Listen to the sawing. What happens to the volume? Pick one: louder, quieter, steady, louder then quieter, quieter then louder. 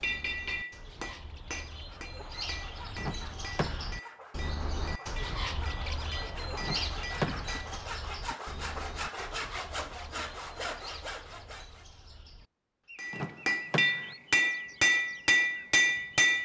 louder.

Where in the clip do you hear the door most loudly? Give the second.
7 s.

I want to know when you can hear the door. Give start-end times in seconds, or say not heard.
3.0-4.0, 6.6-7.6, 13.1-14.2.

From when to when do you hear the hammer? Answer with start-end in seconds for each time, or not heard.
0.0-7.8, 12.9-16.4.